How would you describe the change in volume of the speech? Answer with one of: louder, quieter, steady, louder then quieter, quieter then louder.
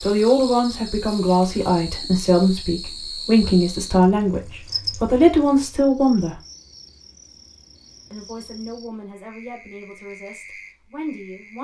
quieter.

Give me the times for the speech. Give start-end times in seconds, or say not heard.
0.0-6.3, 8.1-11.5.